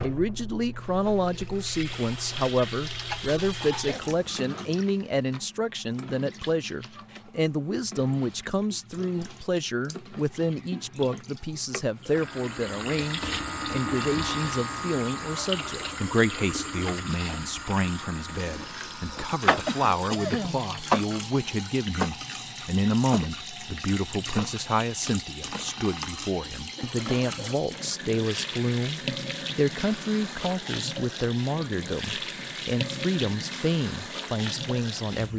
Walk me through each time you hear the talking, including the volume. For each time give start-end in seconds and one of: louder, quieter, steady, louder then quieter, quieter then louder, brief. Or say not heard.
0.0-35.3 steady.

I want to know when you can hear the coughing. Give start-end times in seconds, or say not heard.
3.5-4.7, 19.6-20.6, 26.8-27.6.